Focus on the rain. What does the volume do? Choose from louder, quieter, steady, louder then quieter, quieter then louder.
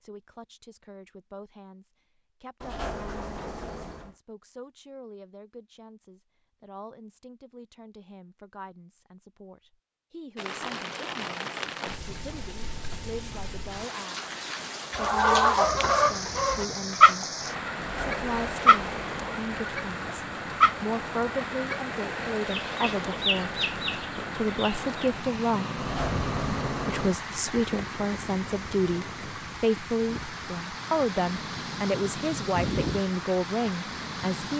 steady.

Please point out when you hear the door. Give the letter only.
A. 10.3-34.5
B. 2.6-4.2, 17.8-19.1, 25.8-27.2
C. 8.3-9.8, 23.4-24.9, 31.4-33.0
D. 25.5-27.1
B.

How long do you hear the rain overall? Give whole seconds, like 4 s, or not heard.
24 s.